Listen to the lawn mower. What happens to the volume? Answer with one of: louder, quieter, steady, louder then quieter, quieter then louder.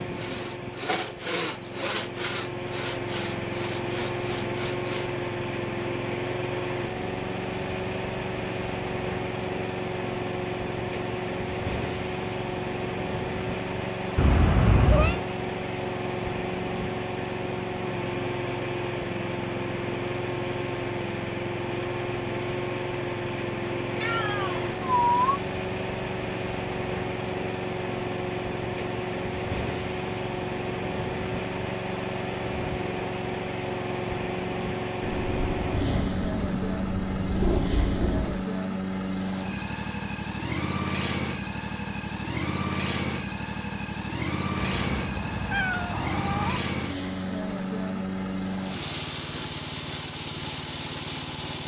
steady.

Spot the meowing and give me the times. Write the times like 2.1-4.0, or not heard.
14.2-15.2, 24.0-25.4, 44.5-46.6.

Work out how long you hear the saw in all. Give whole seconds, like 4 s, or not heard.
5 s.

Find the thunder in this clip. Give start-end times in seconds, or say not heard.
35.0-38.5.